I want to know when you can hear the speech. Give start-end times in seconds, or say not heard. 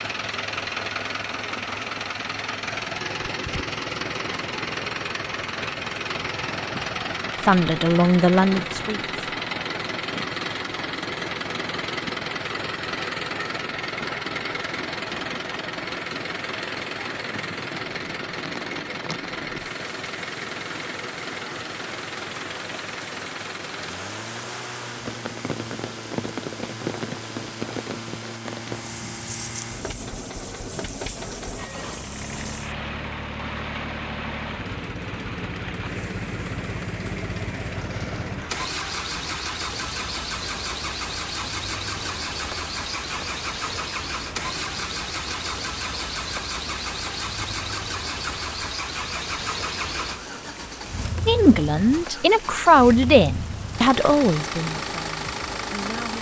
7.4-9.1, 51.2-56.1.